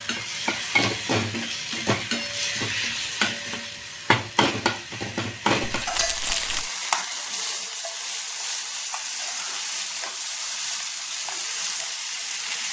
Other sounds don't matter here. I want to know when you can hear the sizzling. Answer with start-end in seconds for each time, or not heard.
0.0-12.6.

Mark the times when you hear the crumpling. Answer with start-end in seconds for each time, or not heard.
5.7-6.7.